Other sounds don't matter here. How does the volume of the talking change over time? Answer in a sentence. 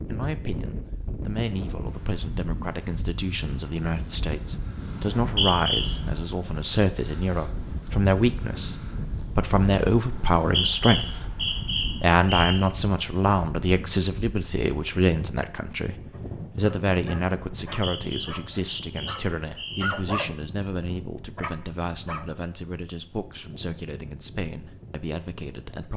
The loudness of the talking goes up, then down.